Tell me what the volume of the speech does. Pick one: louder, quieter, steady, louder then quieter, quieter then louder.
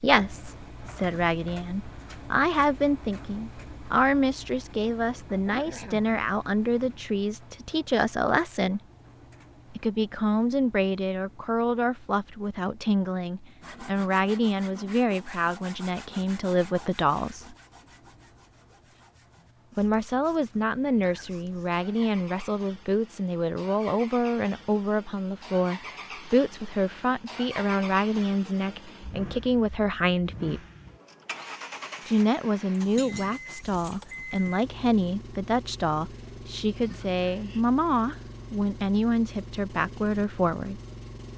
steady.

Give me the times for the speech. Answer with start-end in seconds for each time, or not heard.
0.0-8.8, 9.7-17.6, 19.8-30.6, 32.0-40.8.